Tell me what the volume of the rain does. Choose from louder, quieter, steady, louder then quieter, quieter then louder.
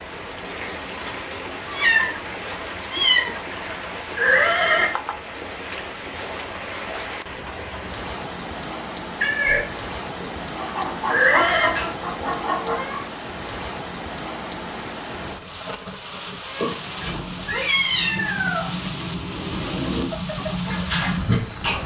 steady.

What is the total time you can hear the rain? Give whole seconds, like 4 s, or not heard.
22 s.